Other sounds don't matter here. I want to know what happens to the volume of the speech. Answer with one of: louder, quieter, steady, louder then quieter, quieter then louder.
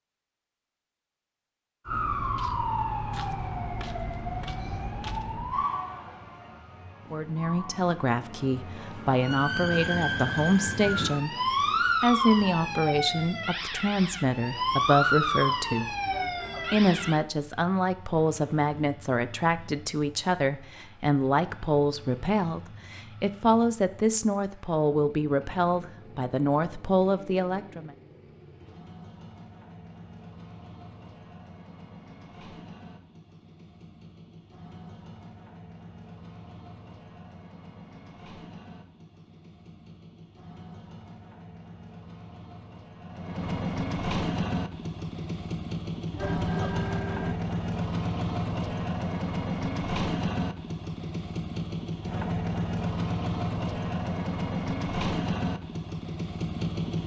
steady.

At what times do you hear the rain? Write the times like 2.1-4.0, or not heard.
not heard.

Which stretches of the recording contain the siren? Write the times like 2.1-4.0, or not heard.
1.9-17.2.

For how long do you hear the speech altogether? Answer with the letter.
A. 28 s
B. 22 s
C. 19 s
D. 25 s
C.